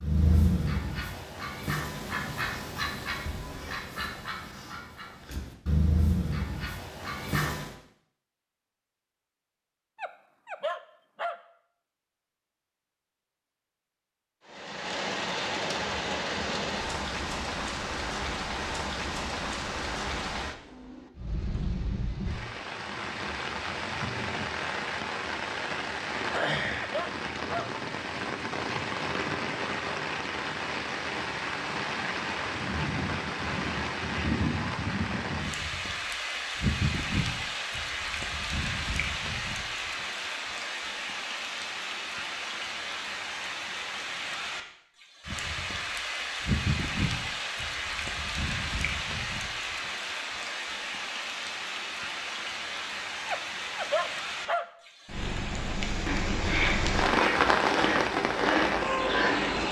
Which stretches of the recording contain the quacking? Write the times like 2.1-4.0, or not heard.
0.0-7.8, 56.0-59.6.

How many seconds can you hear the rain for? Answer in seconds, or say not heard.
45 s.